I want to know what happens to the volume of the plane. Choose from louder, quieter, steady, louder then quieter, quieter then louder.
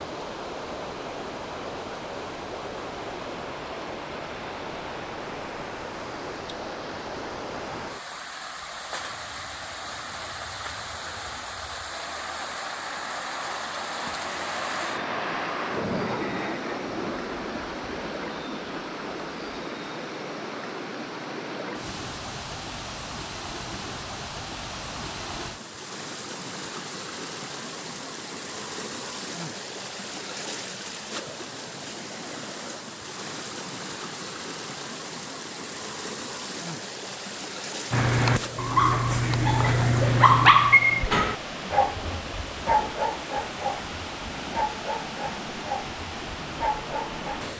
louder then quieter.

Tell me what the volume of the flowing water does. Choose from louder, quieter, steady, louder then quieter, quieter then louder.
steady.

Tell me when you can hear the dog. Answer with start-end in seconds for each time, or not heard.
37.9-47.5.